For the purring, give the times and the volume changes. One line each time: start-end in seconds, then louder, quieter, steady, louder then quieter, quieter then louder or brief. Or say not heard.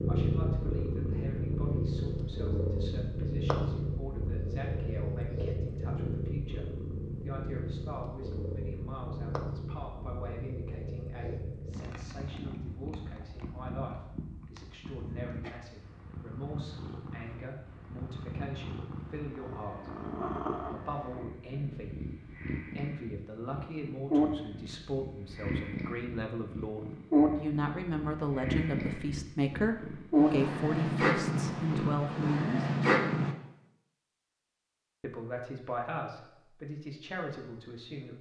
0.0-33.4 quieter then louder.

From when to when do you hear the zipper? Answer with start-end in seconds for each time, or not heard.
not heard.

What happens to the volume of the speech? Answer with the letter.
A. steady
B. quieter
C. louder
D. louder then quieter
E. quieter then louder
C.